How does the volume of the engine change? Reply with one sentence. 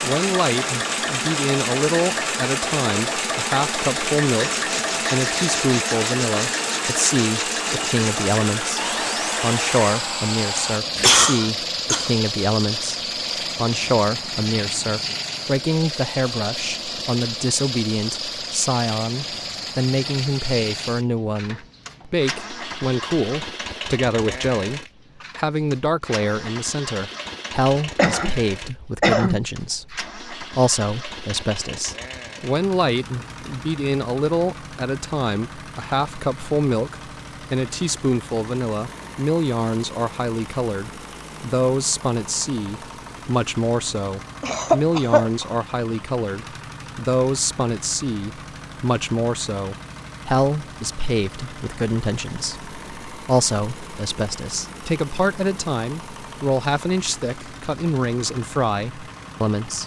The loudness of the engine goes down.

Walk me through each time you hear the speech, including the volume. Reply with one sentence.
The speech can be heard from 0.0 to 59.8 s, at a steady volume.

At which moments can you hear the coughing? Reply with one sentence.
You can hear the coughing from 10.6 to 12.1 s, from 27.9 to 29.4 s and from 44.4 to 45.5 s.